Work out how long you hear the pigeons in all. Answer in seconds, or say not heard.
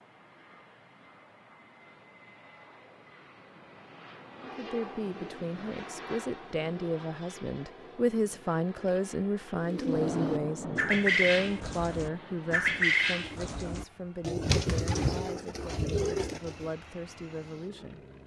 7 s.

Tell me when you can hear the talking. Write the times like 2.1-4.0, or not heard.
4.4-18.0.